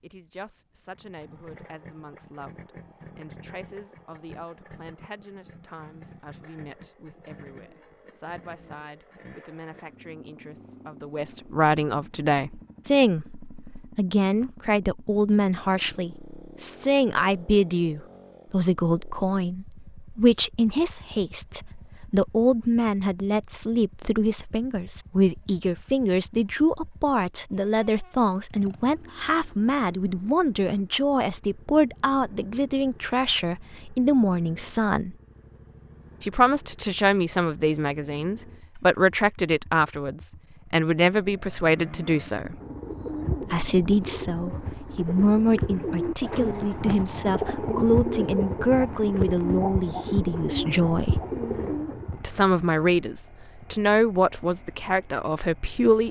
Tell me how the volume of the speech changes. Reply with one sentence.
The volume of the speech goes up.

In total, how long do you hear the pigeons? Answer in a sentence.
The pigeons can be heard for 10 seconds in total.